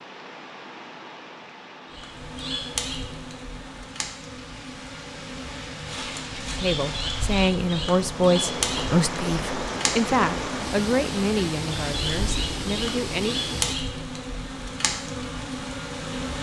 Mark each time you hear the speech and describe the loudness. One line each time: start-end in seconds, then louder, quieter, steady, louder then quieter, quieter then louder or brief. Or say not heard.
6.5-13.4 quieter.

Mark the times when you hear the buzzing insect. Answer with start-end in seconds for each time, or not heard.
1.9-16.3.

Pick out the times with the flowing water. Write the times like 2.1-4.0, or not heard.
0.0-13.8.